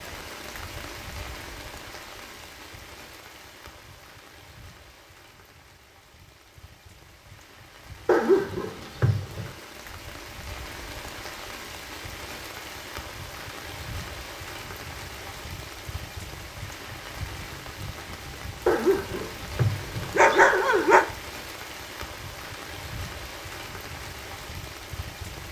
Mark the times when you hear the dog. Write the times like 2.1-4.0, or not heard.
8.1-9.5, 18.6-21.1.